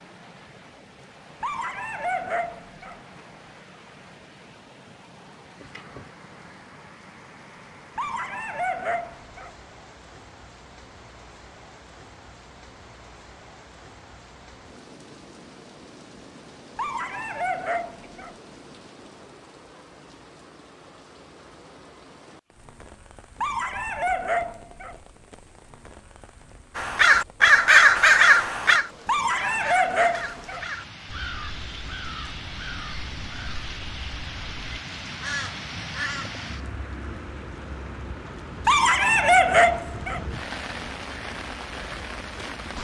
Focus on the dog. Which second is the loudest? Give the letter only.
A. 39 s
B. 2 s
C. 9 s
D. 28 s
A.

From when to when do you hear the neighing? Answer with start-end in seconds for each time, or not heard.
not heard.